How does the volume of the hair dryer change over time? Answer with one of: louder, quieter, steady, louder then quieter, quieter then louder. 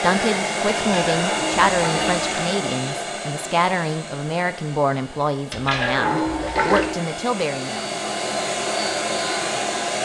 quieter then louder.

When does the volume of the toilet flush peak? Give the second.
6 s.